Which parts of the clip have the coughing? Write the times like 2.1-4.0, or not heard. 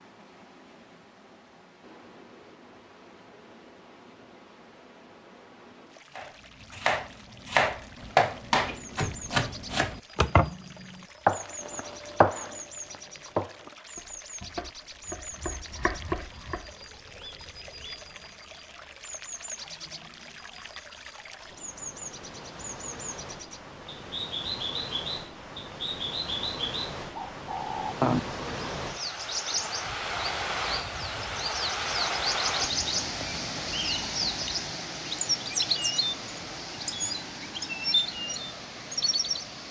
not heard.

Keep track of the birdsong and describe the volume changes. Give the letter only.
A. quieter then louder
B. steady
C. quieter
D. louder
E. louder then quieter
D.